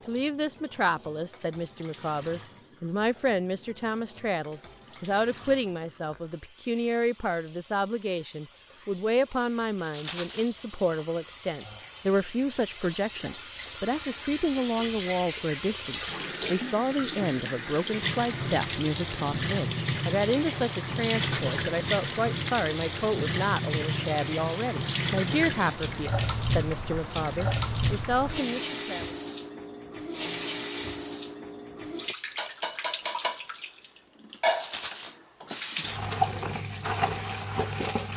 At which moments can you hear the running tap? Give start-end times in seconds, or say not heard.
0.0-38.1.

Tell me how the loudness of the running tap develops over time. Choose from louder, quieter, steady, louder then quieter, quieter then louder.
louder.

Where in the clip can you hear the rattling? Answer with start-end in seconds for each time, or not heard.
9.9-10.5, 21.1-21.6, 34.5-35.1.